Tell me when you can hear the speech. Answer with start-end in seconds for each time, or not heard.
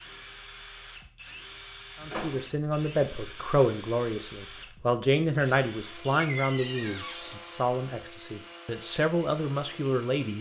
2.0-10.3.